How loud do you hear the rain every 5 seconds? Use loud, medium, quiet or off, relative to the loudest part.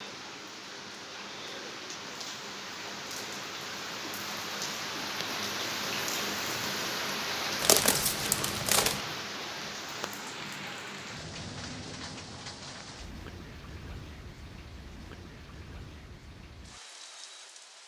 medium, loud, medium, quiet.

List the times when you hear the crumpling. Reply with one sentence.
You can hear the crumpling from 7.6 to 9.1 s.